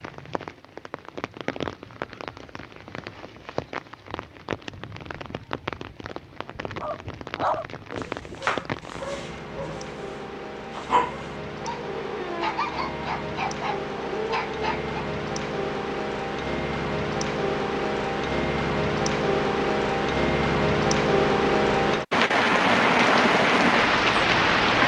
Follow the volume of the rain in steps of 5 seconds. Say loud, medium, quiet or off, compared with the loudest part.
quiet, quiet, quiet, medium, loud.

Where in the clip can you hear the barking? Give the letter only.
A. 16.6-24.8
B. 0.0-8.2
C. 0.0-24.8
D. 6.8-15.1
D.